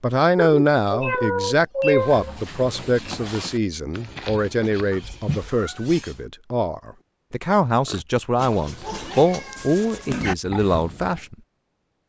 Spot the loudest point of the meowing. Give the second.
2 s.